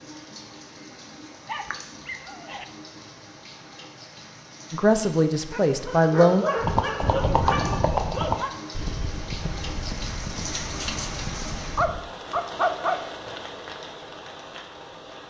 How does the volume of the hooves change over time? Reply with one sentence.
The volume of the hooves goes down.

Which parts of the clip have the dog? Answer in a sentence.
You can hear the dog from 1.4 to 2.6 s, from 5.5 to 8.5 s and from 11.8 to 13.0 s.